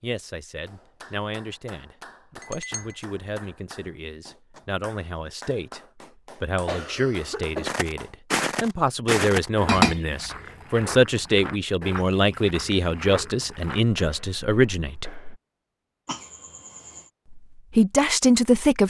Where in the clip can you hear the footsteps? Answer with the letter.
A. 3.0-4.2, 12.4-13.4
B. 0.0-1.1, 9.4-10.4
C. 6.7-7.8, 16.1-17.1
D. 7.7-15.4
D.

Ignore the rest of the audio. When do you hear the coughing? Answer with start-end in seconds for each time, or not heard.
6.7-7.8, 16.1-17.1.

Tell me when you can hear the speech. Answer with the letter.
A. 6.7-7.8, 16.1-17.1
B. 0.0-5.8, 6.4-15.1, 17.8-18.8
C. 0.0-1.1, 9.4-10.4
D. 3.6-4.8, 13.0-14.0
B.